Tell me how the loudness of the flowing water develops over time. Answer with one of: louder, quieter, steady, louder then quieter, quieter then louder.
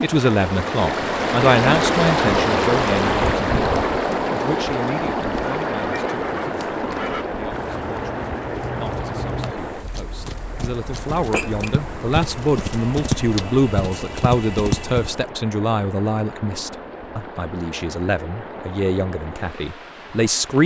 quieter.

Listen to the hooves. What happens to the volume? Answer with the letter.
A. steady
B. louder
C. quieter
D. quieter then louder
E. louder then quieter
B.